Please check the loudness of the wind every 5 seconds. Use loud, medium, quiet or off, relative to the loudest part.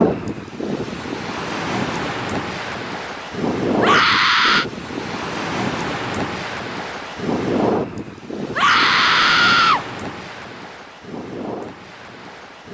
loud, loud, medium.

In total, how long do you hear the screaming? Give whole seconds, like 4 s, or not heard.
2 s.